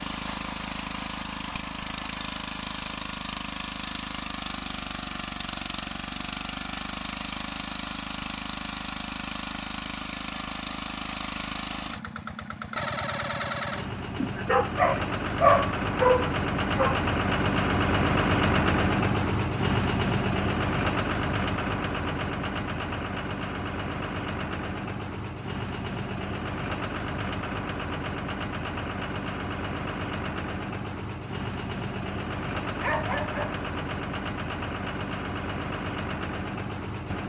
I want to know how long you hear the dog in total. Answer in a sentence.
You can hear the dog for 4 seconds altogether.